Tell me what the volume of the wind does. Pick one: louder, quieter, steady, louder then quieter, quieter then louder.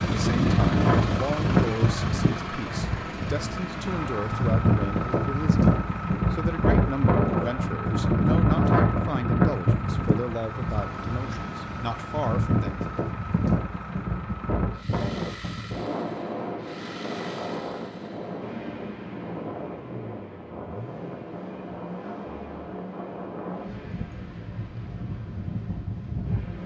quieter.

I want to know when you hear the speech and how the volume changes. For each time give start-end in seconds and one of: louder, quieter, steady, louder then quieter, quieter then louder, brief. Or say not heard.
0.1-12.8 steady.